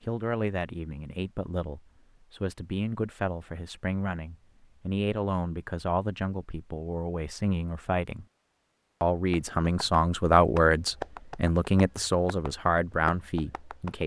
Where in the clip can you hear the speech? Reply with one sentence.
The speech can be heard from 0.0 to 8.2 s and from 9.0 to 14.0 s.